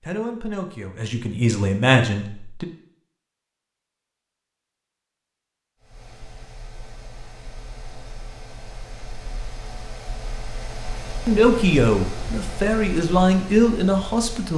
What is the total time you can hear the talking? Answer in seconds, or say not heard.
6 s.